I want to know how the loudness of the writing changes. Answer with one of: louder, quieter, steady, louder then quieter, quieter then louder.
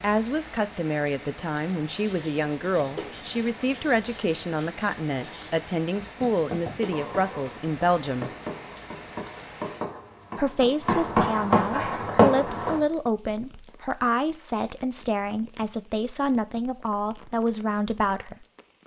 louder.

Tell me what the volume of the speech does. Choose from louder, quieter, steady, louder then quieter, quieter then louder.
steady.